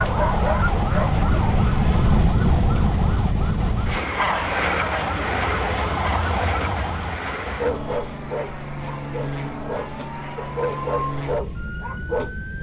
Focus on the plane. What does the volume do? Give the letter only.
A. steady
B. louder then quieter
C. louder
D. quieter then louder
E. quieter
E.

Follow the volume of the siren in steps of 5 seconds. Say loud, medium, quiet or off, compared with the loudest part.
loud, loud, medium.